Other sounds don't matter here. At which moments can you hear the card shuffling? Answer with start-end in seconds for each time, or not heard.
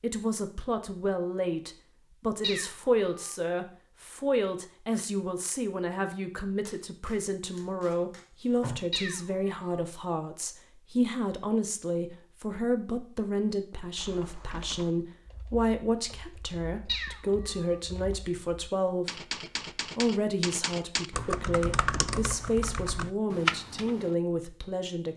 6.7-8.8.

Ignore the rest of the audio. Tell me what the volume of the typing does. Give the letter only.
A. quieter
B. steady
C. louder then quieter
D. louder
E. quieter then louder
E.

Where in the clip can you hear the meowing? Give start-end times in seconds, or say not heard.
2.4-3.4, 8.9-9.8, 16.9-17.8.